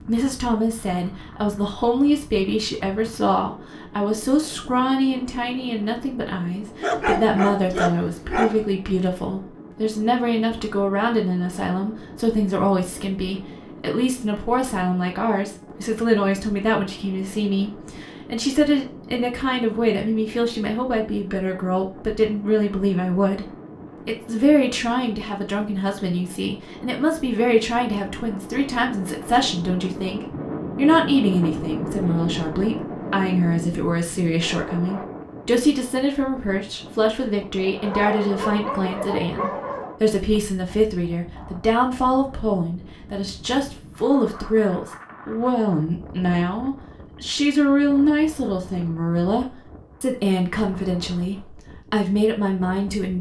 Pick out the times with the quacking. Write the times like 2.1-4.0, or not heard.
not heard.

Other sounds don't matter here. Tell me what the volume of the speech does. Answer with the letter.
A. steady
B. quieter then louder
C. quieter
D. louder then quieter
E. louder
A.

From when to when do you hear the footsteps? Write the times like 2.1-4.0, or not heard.
not heard.